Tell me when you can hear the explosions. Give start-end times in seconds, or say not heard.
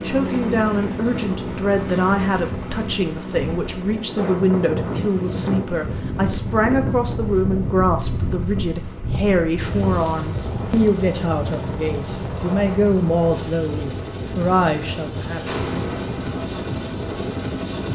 15.4-16.2.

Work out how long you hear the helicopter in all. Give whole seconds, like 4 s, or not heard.
18 s.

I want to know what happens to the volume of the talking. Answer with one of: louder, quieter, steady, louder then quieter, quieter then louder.
steady.